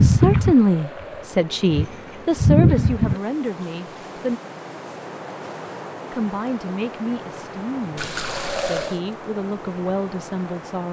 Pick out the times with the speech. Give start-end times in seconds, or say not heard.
0.0-4.4, 6.1-10.8.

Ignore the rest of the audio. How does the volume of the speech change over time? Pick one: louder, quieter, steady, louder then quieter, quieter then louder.
quieter.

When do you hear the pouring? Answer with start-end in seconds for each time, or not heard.
0.3-1.3, 8.0-9.0.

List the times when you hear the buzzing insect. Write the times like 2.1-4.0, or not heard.
0.0-3.2.